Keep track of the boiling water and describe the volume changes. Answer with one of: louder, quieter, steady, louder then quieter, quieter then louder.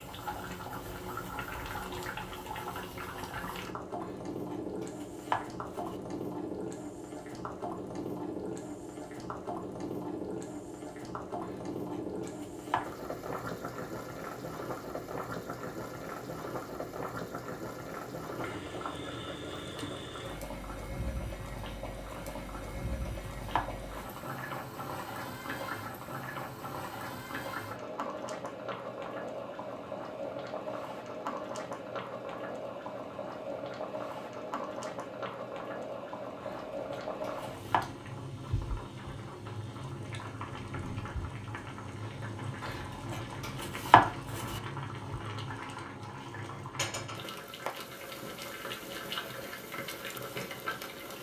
steady.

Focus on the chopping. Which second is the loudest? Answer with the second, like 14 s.
44 s.